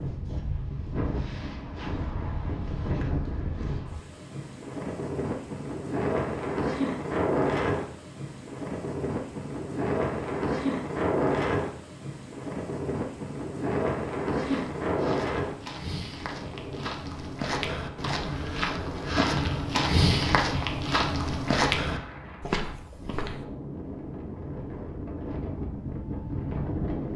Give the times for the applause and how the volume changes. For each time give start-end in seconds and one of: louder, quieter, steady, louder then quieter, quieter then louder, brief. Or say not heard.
not heard.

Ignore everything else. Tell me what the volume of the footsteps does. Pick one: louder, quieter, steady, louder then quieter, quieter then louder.
louder.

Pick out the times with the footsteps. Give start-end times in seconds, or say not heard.
14.4-23.4.